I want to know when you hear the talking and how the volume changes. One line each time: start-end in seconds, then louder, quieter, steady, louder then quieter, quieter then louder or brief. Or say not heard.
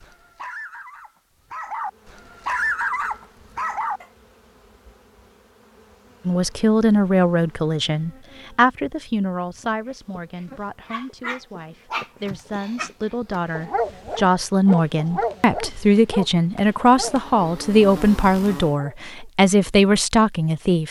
6.2-20.8 quieter then louder.